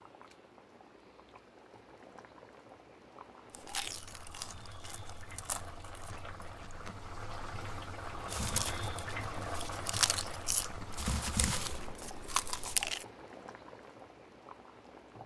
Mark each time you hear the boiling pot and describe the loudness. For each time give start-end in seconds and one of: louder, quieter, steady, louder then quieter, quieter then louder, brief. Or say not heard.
0.0-15.2 louder then quieter.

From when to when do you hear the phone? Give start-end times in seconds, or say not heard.
not heard.